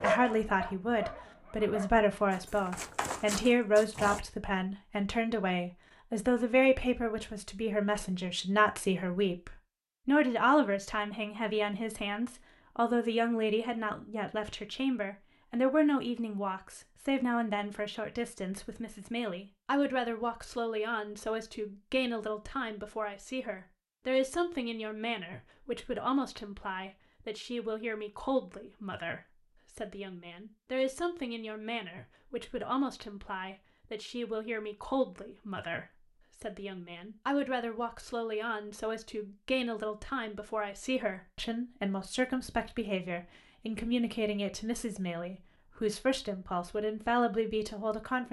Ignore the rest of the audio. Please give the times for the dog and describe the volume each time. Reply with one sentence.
The dog can be heard from 0.0 to 4.2 s, getting quieter then louder.